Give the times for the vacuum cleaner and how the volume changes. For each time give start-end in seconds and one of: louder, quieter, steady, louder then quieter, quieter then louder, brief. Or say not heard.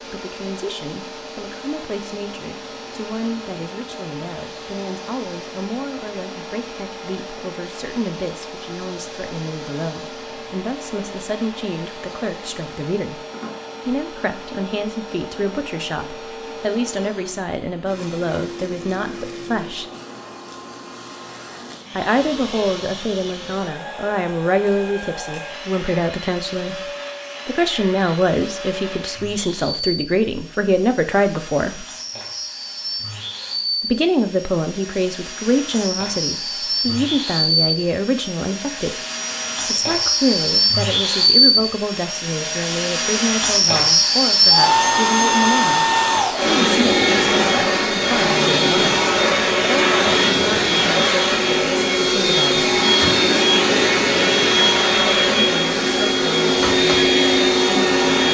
0.0-58.2 louder.